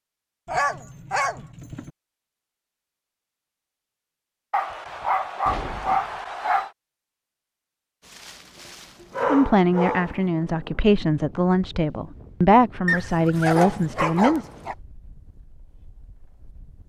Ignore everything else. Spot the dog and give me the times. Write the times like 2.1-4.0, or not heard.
0.5-1.9, 4.5-6.7, 9.0-10.2, 12.8-14.8.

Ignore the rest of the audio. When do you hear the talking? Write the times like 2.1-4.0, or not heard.
9.2-14.5.